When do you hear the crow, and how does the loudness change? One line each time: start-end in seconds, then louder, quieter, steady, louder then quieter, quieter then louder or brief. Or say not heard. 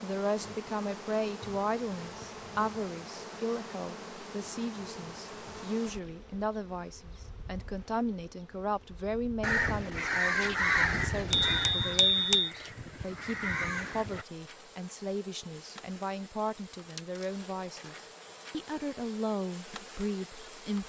9.4-14.2 quieter then louder.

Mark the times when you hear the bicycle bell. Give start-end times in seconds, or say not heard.
11.3-12.5.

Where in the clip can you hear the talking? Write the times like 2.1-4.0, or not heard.
0.0-20.8.